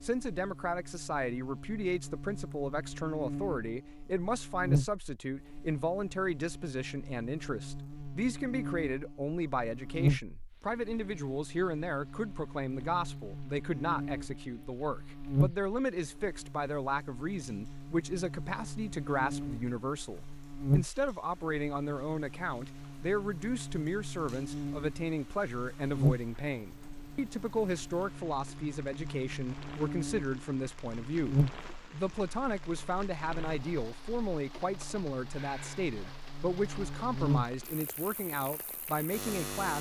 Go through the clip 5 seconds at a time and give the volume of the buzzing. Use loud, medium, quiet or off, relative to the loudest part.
loud, medium, loud, loud, loud, loud, loud, loud.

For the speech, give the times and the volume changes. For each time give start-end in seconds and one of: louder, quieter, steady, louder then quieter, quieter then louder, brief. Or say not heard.
0.0-39.7 steady.